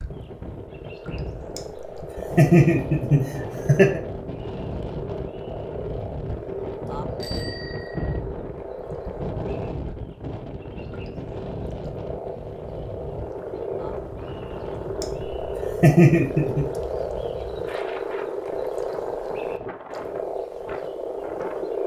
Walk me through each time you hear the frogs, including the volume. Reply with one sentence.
The frogs can be heard from 0.0 to 21.8 s, getting louder.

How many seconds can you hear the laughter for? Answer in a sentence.
The laughter can be heard for 4 seconds in total.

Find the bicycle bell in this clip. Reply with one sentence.
The bicycle bell can be heard from 7.2 to 8.2 s.